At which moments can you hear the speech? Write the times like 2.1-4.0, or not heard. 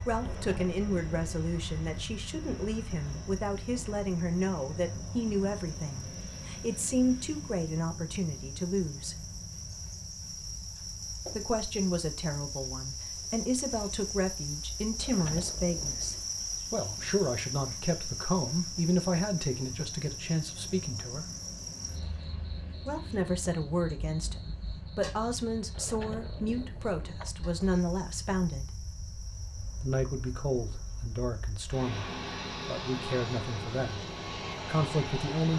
0.0-9.2, 11.3-21.2, 22.9-28.7, 29.8-32.0, 32.6-34.0, 34.6-35.5.